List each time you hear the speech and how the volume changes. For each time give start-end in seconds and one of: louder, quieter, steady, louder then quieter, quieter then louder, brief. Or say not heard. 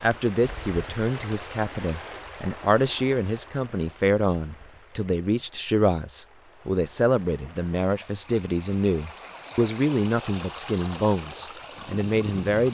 0.0-12.6 steady.